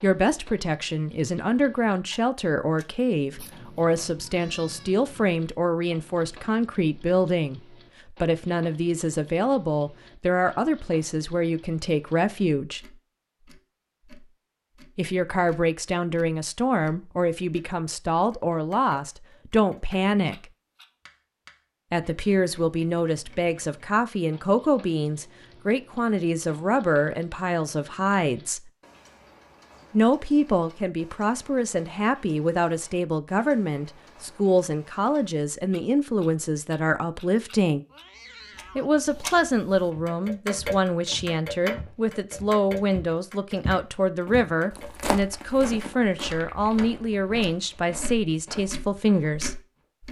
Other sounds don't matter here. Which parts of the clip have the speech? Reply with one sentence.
You can hear the speech from 0.0 to 12.8 s, from 14.9 to 20.4 s, from 21.9 to 28.7 s, from 29.9 to 37.9 s and from 38.8 to 49.6 s.